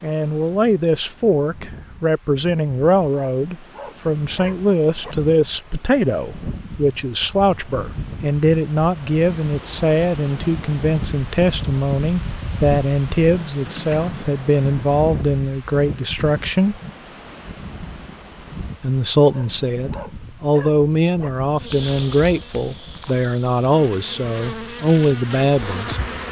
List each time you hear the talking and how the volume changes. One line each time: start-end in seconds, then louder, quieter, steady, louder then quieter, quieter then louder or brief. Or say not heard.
0.0-16.8 steady
18.8-26.0 steady.